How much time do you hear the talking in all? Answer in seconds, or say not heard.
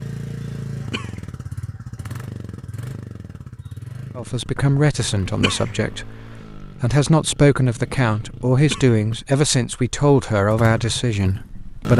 8 s.